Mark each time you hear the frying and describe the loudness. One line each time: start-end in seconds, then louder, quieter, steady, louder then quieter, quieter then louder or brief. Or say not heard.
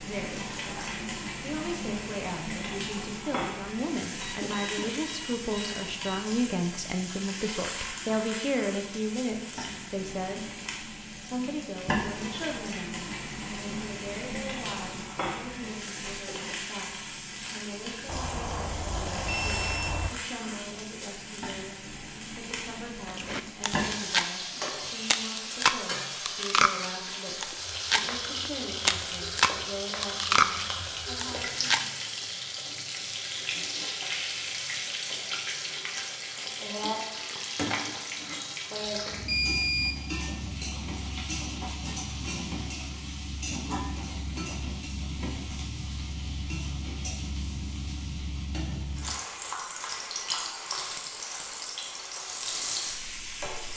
0.0-53.7 steady.